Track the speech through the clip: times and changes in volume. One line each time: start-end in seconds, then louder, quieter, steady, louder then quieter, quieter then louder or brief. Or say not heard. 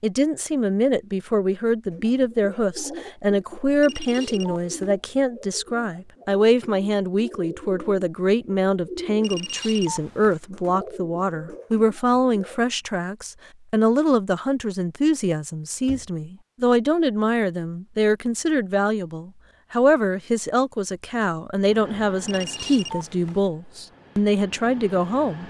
0.0-25.4 steady.